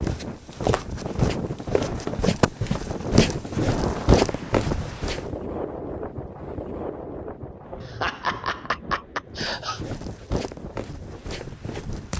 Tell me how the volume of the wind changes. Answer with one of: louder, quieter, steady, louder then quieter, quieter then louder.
quieter.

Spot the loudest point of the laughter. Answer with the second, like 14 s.
8 s.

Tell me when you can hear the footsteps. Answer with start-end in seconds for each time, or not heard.
0.0-5.3, 9.3-12.1.